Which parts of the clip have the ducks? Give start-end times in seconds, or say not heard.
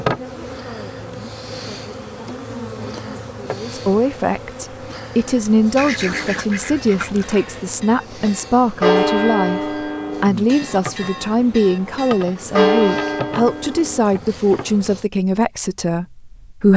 5.8-7.5.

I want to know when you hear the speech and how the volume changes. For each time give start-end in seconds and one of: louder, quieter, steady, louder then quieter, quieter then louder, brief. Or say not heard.
0.1-16.7 louder.